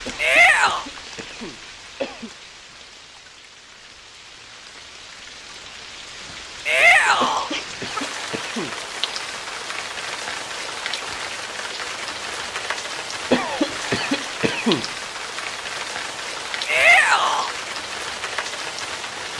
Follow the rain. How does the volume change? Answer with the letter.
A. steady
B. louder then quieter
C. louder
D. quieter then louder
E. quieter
C.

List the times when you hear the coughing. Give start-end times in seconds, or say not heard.
0.1-2.3, 7.2-8.8, 13.3-14.9.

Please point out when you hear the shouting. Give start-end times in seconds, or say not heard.
0.1-0.8, 6.7-7.5, 16.6-17.5.